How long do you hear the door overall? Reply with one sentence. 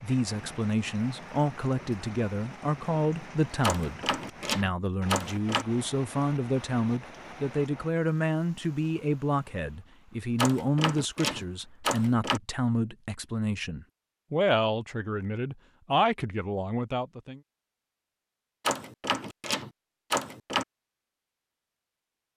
You can hear the door for 6 seconds altogether.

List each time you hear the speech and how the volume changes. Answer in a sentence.
You can hear the speech from 0.0 to 17.4 s, at a steady volume.